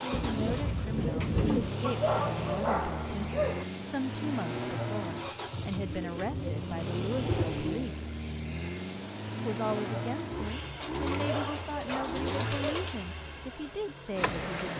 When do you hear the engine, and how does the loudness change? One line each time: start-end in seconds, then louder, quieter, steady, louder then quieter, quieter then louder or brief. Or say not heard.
0.0-14.7 steady.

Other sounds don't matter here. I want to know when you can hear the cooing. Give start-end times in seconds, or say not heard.
0.1-1.8, 5.5-7.8, 10.8-13.1.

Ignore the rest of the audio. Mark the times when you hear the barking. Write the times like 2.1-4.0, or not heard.
1.8-3.6, 11.1-12.9.